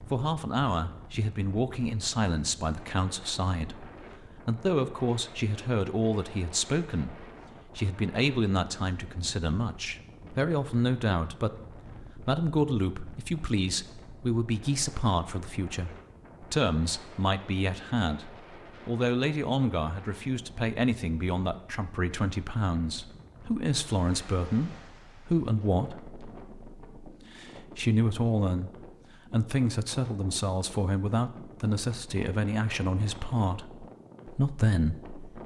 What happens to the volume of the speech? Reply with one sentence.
The volume of the speech stays about the same.